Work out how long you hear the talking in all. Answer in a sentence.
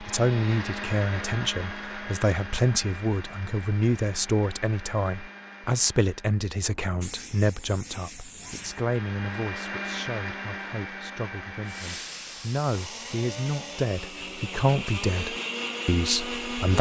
You can hear the talking for 17 seconds altogether.